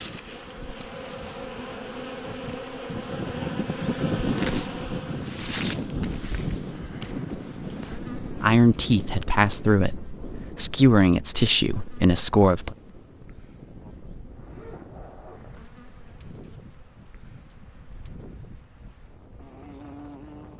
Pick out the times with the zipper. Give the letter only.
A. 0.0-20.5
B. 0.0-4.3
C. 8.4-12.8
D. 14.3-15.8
D.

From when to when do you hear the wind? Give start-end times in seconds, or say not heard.
0.0-20.5.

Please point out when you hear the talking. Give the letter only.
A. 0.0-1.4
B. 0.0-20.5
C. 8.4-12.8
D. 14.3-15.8
C.